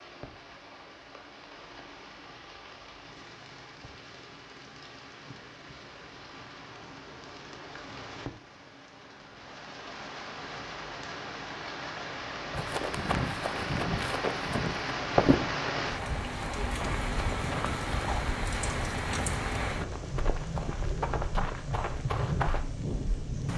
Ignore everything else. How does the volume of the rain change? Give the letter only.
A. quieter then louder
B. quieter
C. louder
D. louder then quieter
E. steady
C.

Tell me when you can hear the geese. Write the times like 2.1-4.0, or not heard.
not heard.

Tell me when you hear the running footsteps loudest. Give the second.
15 s.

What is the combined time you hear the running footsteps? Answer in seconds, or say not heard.
10 s.